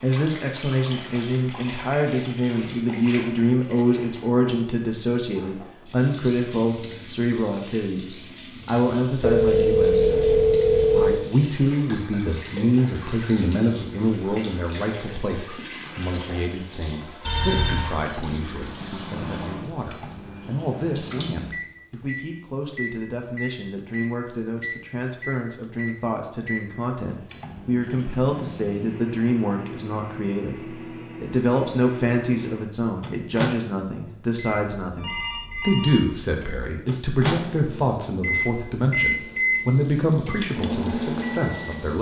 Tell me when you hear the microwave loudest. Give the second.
39 s.